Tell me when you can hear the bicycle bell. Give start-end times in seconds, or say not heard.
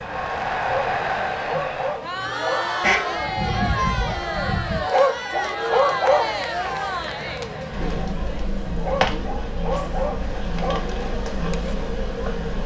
not heard.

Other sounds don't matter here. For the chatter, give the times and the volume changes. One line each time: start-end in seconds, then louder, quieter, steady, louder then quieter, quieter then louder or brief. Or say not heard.
0.0-12.6 quieter.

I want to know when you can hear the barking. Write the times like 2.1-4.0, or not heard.
0.6-2.6, 4.8-6.8, 8.8-10.8.